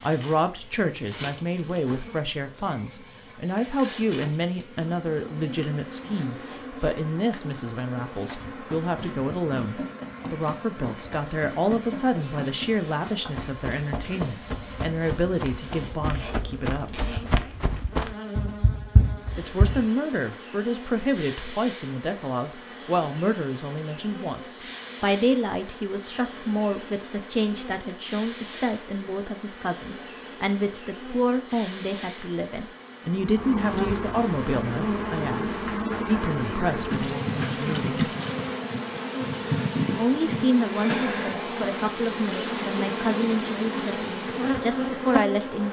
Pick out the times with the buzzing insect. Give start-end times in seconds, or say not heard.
0.0-45.6.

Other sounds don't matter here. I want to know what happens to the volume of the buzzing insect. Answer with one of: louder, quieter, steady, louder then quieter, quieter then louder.
louder.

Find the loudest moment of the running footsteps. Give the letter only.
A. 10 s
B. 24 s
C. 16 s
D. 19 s
D.